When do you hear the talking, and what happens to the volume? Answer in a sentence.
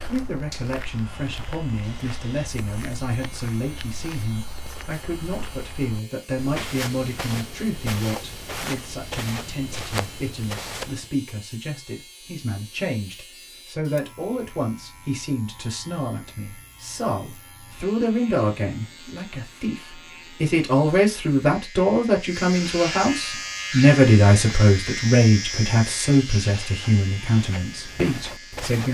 The talking can be heard from 0.0 to 28.8 s, getting louder.